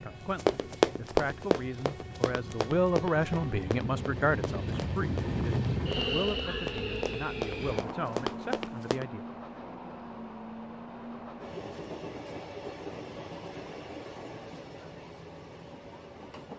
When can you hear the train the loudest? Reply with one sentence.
The volume of the train peaks at 6 seconds.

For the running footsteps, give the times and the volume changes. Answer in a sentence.
The running footsteps can be heard from 0.3 to 9.1 s, getting quieter then louder.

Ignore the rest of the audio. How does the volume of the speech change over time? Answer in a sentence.
The loudness of the speech goes up, then down.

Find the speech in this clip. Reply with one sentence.
The speech can be heard from 0.0 to 9.2 s.